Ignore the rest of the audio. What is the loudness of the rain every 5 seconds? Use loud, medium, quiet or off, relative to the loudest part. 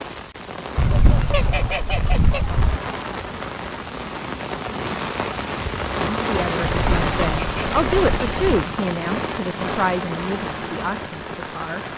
medium, loud, medium.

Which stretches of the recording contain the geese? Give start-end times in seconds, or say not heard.
0.8-2.8, 6.6-8.4.